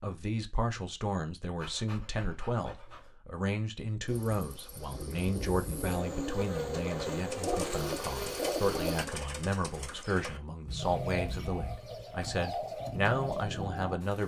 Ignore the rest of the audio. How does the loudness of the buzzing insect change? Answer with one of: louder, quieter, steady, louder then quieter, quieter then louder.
louder.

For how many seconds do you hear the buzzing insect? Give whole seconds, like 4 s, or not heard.
5 s.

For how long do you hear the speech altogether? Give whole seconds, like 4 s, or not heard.
14 s.